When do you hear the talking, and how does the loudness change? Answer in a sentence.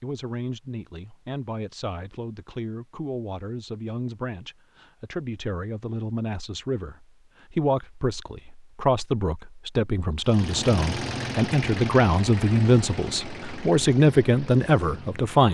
The talking can be heard from 0.0 to 15.4 s, getting louder.